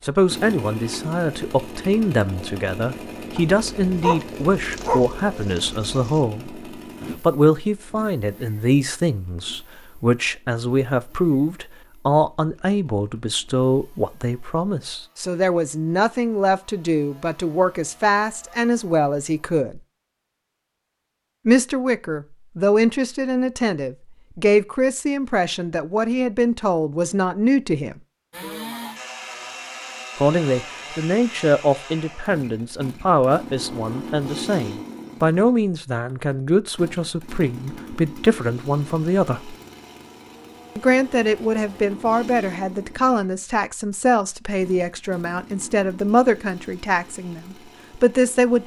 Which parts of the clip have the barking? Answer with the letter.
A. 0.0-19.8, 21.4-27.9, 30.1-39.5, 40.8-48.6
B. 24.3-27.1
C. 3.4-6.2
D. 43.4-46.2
C.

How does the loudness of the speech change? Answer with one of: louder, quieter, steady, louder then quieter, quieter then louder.
steady.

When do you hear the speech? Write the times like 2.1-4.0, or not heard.
0.0-19.8, 21.4-27.9, 30.1-39.5, 40.8-48.6.